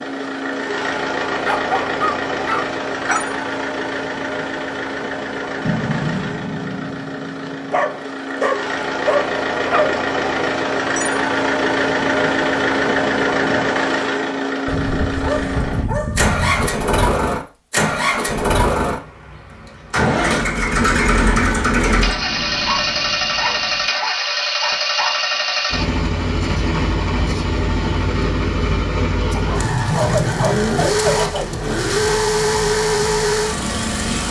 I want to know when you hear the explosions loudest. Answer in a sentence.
The volume of the explosions peaks at 6 seconds.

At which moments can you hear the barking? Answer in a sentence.
The barking can be heard from 1.4 to 3.2 s, from 7.7 to 9.9 s, from 14.7 to 16.7 s, from 22.6 to 25.2 s and from 29.3 to 31.6 s.